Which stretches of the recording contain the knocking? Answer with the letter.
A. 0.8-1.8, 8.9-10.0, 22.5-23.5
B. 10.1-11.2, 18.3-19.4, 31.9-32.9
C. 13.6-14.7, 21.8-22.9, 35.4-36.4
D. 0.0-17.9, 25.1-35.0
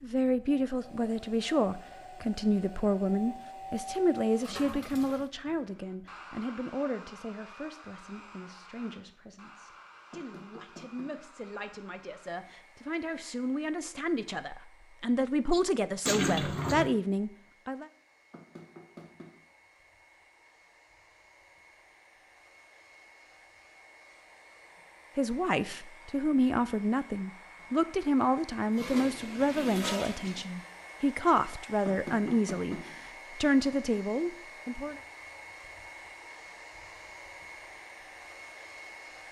B.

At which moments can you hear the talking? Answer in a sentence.
The talking can be heard from 0.0 to 17.9 s and from 25.1 to 35.0 s.